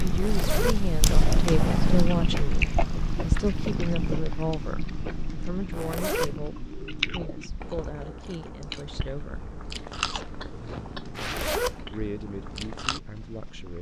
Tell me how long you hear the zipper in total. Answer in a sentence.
You can hear the zipper for 2 seconds altogether.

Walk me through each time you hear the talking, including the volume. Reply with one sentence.
The talking can be heard from 0.0 to 9.4 s, getting quieter; and briefly from 11.9 to 13.7 s.